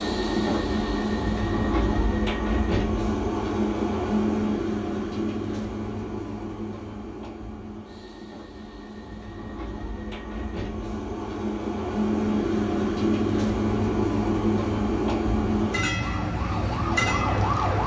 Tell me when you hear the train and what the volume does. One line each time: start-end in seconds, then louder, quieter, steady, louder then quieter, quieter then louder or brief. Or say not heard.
0.0-17.8 quieter then louder.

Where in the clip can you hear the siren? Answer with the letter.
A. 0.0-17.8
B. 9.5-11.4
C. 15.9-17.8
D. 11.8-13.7
C.